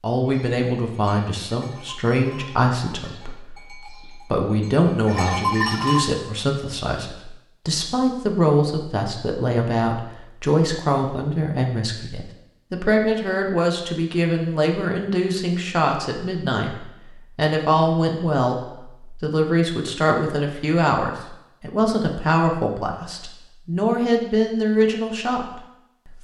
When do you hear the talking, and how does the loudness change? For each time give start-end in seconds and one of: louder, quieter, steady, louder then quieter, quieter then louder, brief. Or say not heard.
0.0-26.1 steady.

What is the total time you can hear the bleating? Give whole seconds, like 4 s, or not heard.
6 s.